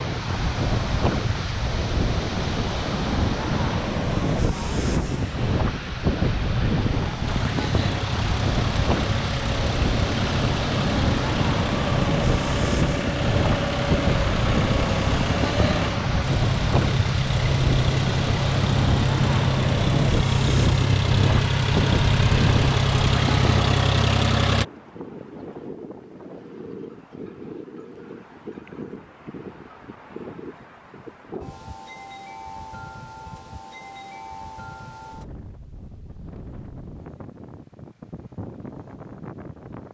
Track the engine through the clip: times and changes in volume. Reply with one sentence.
You can hear the engine from 7.2 to 24.6 s, getting louder.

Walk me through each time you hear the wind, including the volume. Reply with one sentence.
You can hear the wind from 0.0 to 39.8 s, getting quieter.